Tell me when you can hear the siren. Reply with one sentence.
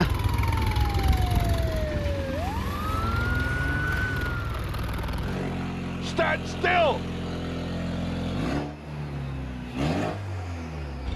You can hear the siren from 0.0 to 4.6 s.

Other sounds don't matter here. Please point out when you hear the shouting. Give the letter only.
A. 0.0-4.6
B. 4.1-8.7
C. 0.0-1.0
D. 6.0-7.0
D.